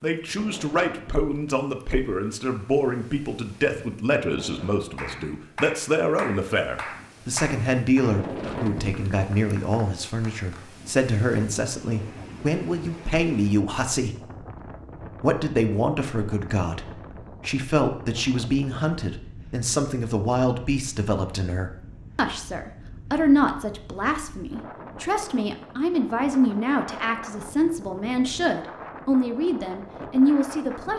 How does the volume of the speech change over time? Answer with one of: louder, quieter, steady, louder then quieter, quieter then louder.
steady.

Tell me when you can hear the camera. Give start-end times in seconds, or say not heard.
not heard.